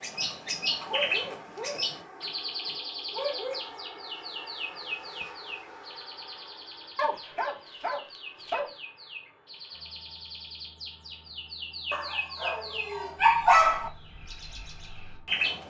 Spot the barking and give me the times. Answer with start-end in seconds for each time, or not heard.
0.8-3.6, 7.0-8.7, 11.9-13.9.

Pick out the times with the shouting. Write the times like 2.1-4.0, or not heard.
not heard.